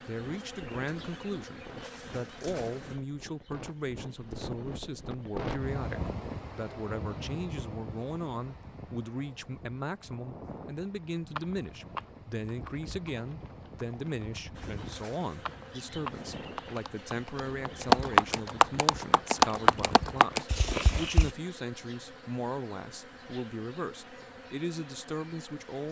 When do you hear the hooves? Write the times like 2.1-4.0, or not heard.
11.2-21.3.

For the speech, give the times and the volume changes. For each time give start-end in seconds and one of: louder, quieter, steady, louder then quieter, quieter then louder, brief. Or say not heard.
0.1-25.8 steady.